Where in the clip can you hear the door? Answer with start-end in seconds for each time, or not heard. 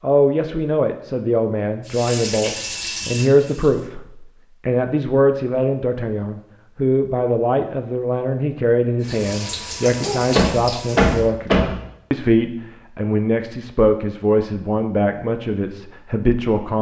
10.3-11.8.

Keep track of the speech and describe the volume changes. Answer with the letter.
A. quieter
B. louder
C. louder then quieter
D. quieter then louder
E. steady
E.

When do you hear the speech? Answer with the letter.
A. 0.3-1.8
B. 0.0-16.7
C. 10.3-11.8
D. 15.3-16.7
B.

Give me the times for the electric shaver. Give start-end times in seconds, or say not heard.
not heard.